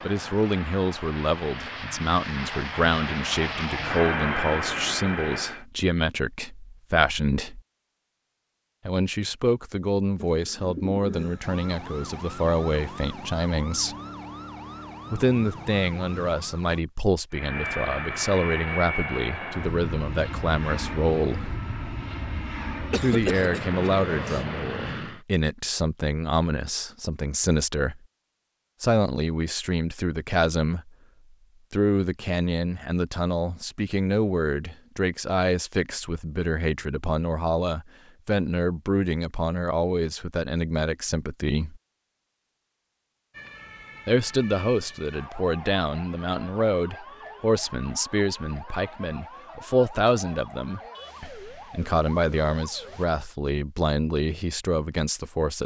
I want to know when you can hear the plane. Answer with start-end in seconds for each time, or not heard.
0.0-5.7, 17.3-25.2.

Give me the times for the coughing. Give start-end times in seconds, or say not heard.
22.9-24.4.